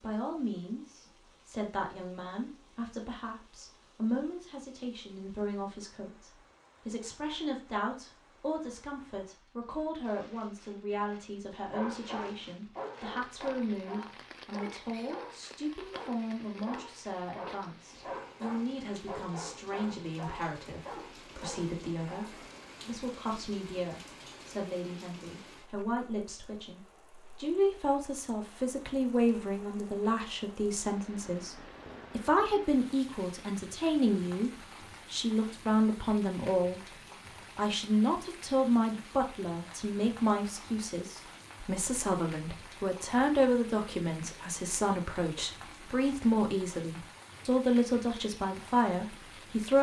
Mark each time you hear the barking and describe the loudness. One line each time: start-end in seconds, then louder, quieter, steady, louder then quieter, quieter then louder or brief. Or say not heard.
11.7-22.6 steady.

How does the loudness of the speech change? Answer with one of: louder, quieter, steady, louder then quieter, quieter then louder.
louder.